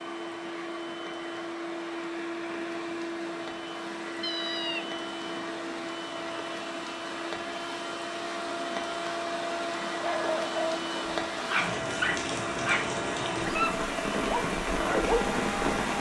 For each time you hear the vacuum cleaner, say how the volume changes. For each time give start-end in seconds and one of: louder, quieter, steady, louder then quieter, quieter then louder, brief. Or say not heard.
0.0-15.9 steady.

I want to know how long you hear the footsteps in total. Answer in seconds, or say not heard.
not heard.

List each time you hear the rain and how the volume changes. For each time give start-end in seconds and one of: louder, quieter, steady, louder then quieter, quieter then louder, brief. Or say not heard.
0.0-15.9 louder.